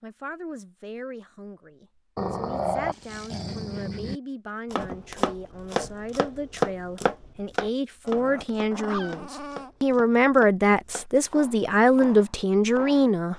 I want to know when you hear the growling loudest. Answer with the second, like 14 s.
3 s.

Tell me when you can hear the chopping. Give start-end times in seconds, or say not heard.
4.7-13.3.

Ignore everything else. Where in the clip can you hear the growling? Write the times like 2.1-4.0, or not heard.
2.1-4.2, 8.0-9.9.